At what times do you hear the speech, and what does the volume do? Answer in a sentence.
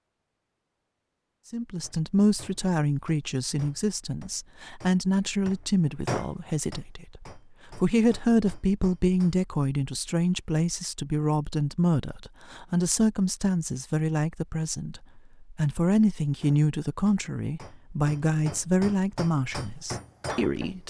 You can hear the speech from 1.5 to 20.8 s, at a steady volume.